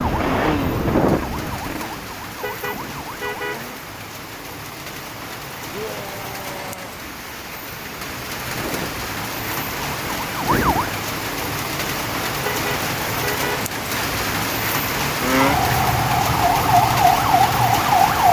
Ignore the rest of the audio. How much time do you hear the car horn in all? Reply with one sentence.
The car horn can be heard for 2 seconds in total.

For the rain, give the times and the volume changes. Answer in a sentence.
You can hear the rain from 0.0 to 18.2 s, getting louder.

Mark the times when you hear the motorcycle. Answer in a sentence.
The motorcycle can't be heard in this clip.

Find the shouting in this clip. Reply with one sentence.
You can hear the shouting from 5.7 to 7.0 s.